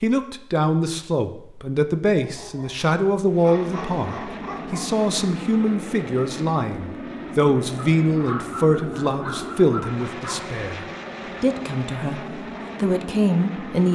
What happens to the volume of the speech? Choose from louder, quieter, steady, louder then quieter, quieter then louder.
steady.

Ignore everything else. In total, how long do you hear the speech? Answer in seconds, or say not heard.
14 s.